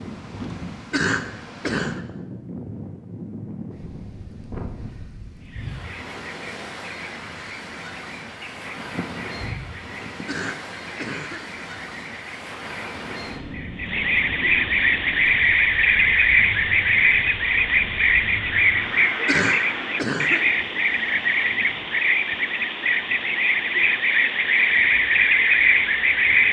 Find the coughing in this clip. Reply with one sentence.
You can hear the coughing from 0.9 to 2.0 s, from 10.2 to 11.5 s and from 19.2 to 20.5 s.